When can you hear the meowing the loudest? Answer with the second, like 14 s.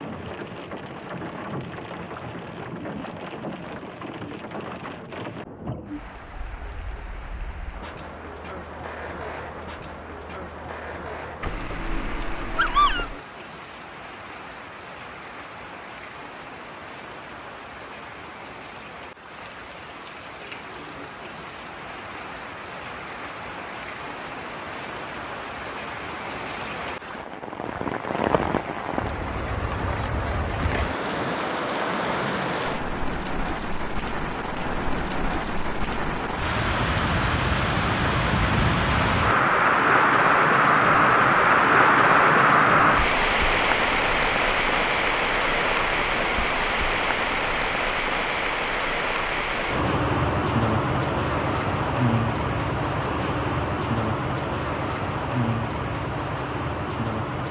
13 s.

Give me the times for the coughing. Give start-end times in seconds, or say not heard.
not heard.